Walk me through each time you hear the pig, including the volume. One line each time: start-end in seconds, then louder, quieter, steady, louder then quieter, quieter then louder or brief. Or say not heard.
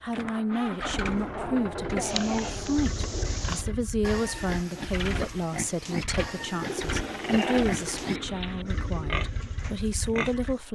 2.0-10.7 steady.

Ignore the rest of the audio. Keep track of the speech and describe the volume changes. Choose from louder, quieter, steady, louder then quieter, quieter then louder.
steady.